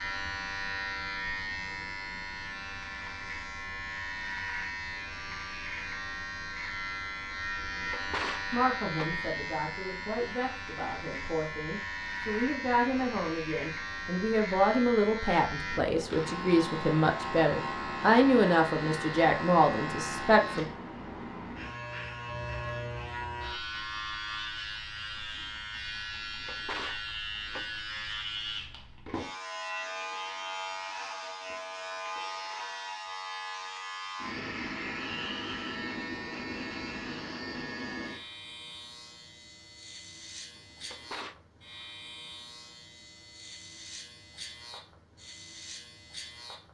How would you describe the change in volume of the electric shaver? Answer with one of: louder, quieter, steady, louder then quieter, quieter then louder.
quieter.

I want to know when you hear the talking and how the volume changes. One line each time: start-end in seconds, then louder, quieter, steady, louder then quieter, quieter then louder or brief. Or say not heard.
8.5-20.6 louder.